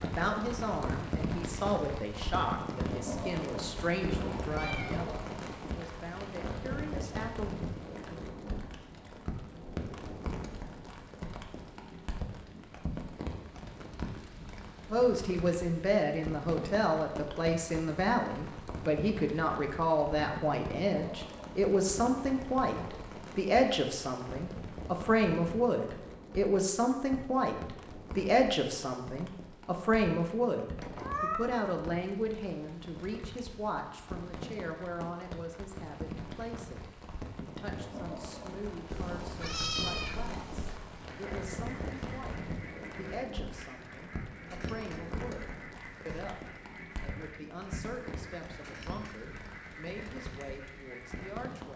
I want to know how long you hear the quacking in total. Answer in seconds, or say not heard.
10 s.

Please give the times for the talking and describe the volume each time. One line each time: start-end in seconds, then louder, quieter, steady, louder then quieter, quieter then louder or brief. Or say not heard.
0.0-7.5 quieter
14.8-51.7 quieter.